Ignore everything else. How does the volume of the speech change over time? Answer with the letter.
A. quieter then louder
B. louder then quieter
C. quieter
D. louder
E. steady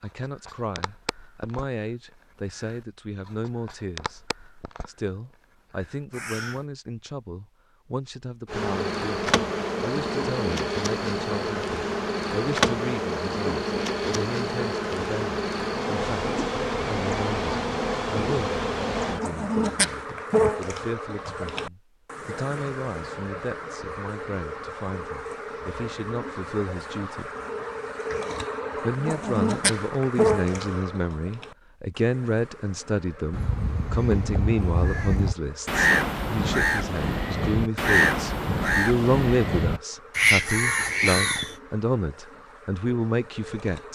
D.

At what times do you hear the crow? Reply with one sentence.
The crow can be heard from 0.0 to 6.7 s and from 33.3 to 41.5 s.